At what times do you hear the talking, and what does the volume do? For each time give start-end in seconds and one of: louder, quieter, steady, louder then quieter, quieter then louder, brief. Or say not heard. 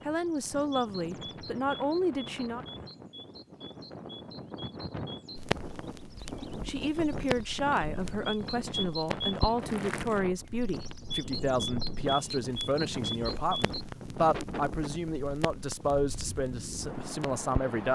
0.1-2.6 brief
6.6-17.9 steady.